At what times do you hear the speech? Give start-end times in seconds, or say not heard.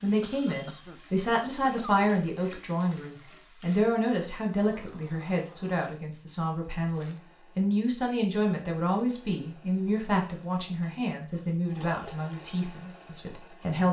0.0-13.8.